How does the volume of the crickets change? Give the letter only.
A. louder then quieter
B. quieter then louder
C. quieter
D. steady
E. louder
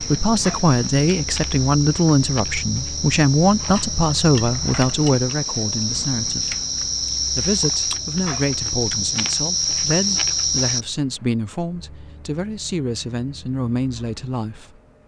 E.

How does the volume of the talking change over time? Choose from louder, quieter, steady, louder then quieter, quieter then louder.
quieter.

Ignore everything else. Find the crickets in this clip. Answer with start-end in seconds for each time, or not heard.
0.0-10.8.